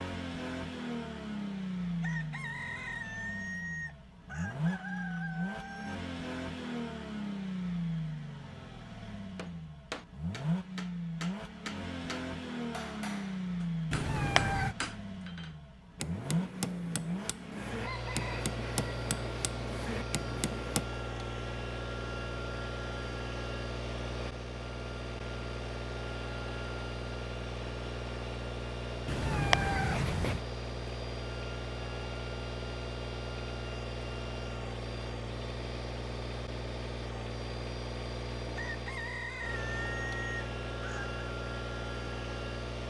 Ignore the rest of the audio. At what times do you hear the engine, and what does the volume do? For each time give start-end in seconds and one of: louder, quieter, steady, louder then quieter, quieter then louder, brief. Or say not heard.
0.0-42.8 steady.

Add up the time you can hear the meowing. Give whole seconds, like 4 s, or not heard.
2 s.